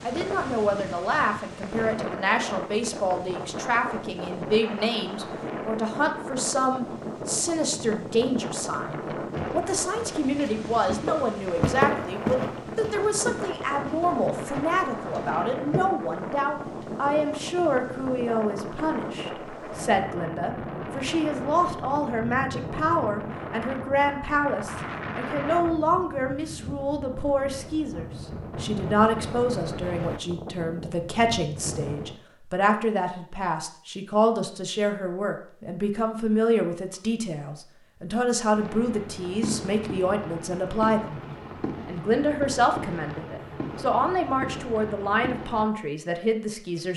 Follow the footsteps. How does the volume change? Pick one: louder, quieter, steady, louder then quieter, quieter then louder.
louder then quieter.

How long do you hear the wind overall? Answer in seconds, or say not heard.
32 s.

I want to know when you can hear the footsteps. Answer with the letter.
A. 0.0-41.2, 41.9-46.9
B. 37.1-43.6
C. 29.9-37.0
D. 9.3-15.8
D.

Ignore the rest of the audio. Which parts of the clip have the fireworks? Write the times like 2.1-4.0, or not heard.
38.5-45.6.